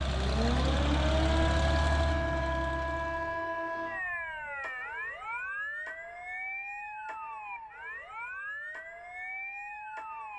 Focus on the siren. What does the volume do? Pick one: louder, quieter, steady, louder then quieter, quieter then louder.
quieter.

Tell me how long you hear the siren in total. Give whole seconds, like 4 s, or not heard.
10 s.